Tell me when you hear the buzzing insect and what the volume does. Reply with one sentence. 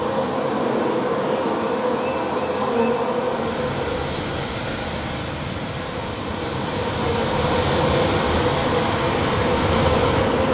The buzzing insect can be heard from 0.0 to 10.4 s, getting quieter then louder.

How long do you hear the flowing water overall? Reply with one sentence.
The flowing water can be heard for 7 seconds in total.